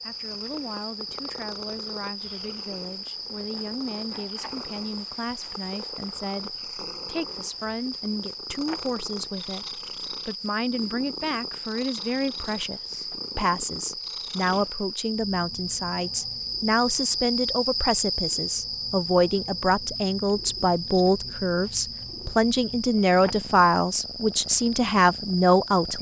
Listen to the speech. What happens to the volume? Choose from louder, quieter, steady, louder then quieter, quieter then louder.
louder.